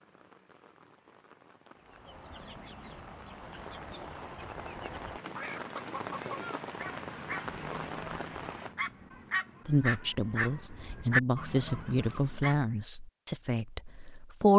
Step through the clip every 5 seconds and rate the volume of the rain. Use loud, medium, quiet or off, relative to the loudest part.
medium, loud, off.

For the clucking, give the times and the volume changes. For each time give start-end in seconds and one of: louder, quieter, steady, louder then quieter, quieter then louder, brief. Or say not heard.
1.8-12.6 louder.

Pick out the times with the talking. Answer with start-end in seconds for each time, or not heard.
9.7-14.5.